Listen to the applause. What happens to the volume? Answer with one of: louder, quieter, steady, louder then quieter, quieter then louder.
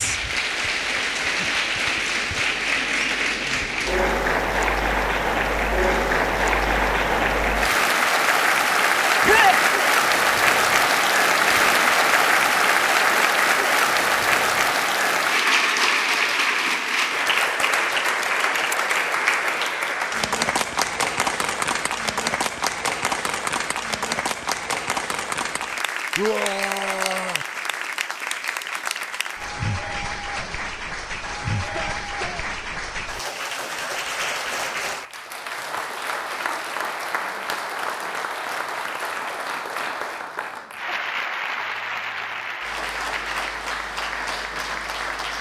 quieter.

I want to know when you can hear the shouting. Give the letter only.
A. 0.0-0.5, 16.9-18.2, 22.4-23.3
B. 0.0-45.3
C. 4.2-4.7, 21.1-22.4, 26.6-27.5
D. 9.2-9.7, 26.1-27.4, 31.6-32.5
D.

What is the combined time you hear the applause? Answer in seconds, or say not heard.
45 s.